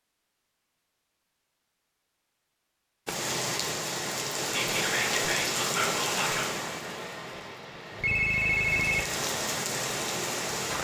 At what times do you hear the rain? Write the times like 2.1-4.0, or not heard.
3.0-10.7.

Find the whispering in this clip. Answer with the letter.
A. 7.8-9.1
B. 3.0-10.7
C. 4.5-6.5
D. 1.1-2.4
C.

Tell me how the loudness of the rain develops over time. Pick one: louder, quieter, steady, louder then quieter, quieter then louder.
quieter then louder.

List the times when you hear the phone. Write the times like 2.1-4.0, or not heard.
7.8-9.1.